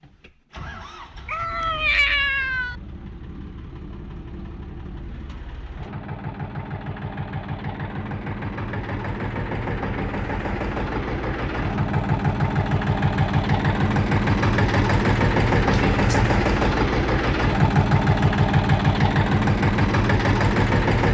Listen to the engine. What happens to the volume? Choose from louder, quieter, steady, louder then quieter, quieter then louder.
louder.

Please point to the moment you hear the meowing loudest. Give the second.
2 s.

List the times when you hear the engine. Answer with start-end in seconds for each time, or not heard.
0.0-21.0.